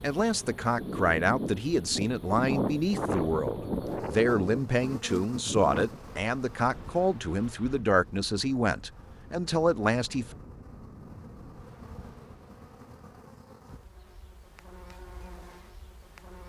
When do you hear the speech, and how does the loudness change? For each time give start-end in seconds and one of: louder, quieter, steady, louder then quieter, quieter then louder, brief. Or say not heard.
0.0-10.3 steady.